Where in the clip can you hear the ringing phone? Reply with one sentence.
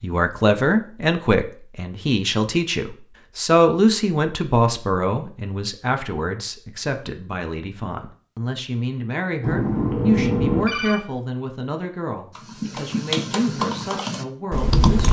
You can hear the ringing phone from 9.4 to 11.0 s.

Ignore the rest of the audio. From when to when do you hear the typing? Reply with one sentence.
The typing can be heard from 12.3 to 15.0 s.